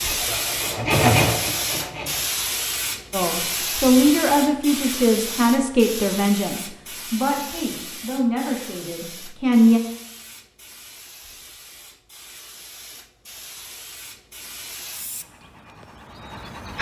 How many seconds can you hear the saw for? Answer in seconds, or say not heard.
2 s.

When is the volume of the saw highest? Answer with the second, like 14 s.
1 s.